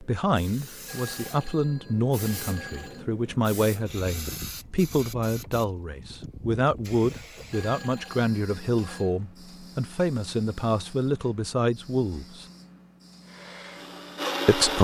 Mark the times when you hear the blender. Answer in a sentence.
The blender can be heard from 13.2 to 14.7 s.